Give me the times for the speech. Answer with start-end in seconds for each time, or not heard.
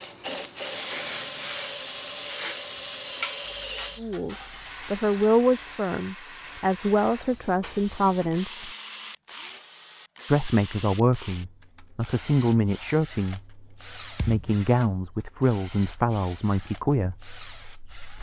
4.0-8.7, 10.2-18.1.